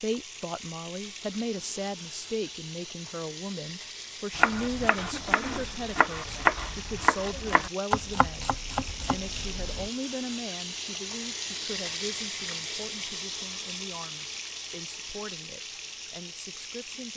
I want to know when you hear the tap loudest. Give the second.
12 s.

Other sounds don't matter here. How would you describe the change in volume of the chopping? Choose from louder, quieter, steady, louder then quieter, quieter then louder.
louder then quieter.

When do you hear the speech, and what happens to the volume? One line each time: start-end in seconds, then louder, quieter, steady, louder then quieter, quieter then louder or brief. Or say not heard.
0.0-17.1 quieter.